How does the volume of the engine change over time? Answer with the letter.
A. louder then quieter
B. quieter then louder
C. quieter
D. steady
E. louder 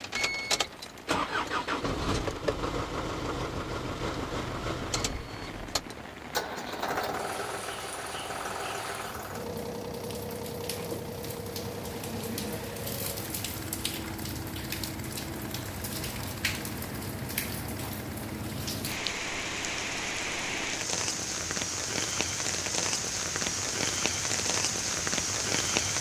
C.